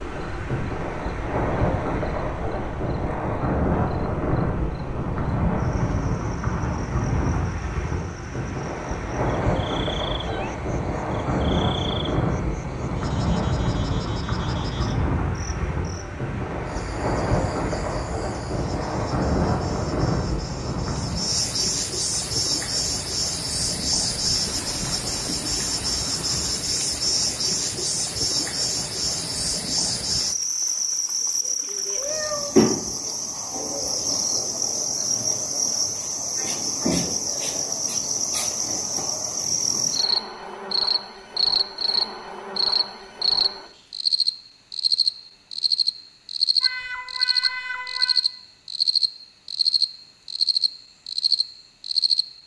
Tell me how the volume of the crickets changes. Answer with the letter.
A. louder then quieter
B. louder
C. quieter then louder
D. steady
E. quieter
B.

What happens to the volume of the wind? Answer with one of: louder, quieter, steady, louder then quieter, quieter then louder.
quieter.